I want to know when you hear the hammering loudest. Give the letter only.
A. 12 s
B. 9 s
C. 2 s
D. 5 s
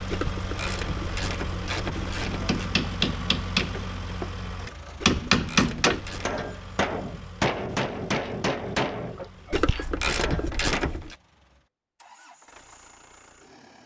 D.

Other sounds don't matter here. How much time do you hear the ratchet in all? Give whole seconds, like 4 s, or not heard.
6 s.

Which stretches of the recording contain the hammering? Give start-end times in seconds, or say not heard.
2.2-10.9.